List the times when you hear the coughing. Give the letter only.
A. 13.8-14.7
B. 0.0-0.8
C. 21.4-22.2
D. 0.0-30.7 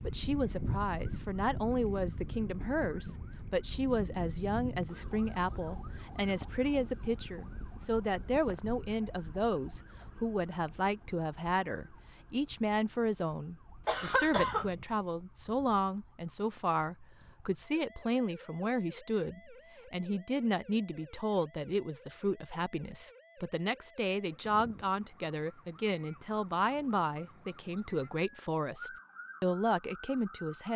A.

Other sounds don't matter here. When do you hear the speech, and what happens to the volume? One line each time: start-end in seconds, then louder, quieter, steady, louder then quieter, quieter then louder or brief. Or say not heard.
0.0-30.7 steady.